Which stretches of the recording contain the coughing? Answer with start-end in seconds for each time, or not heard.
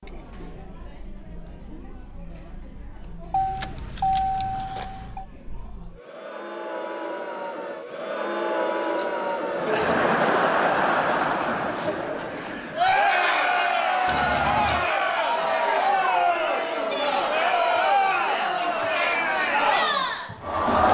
not heard.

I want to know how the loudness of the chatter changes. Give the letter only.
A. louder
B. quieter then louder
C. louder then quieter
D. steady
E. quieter
A.